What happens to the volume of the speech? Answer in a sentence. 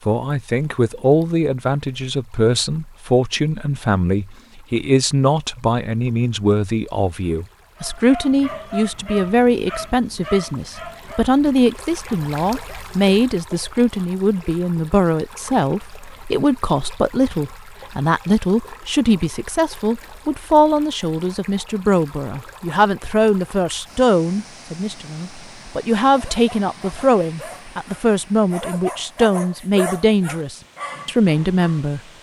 The loudness of the speech stays about the same.